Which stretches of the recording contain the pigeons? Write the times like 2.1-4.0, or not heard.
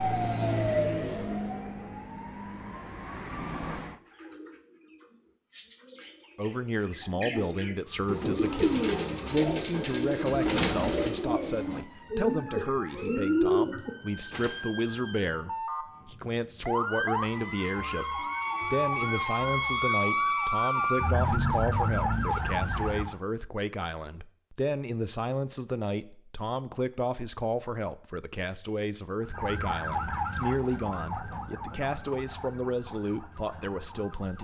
4.0-14.6.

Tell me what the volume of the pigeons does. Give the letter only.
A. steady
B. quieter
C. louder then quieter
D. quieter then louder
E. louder
E.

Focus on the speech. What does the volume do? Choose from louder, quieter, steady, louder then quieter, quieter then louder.
steady.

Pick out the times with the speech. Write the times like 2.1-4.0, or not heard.
6.3-34.3.